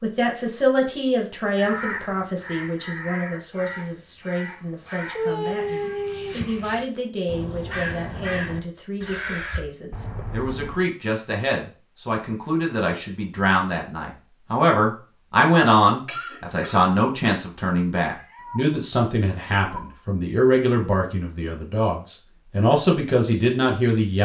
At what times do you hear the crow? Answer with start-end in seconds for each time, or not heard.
1.6-9.7.